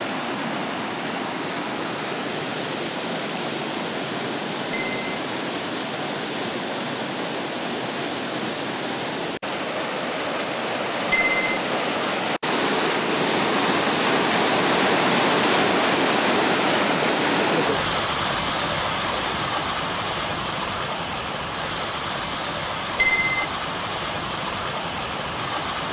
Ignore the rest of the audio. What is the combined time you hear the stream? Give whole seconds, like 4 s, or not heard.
26 s.